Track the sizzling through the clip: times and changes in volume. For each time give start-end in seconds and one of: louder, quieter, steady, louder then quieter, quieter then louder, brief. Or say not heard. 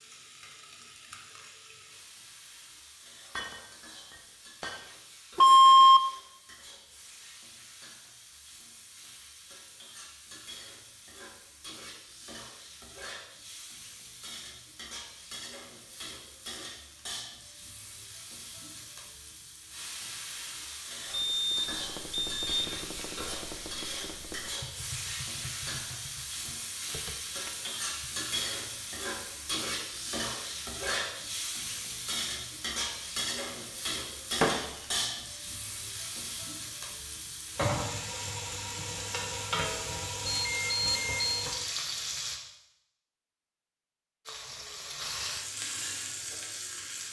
0.0-42.4 louder
44.2-47.0 brief.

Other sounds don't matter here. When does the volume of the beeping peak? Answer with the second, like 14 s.
6 s.